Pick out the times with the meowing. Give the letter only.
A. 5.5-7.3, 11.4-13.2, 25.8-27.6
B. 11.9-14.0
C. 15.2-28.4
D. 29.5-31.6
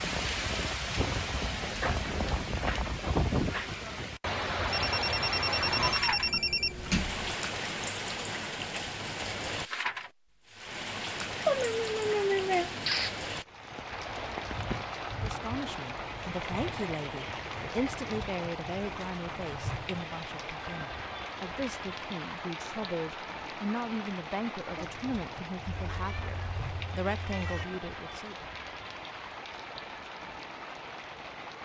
A.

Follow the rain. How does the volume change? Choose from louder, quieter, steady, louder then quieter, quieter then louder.
quieter.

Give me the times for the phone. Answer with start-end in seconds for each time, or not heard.
4.7-6.8.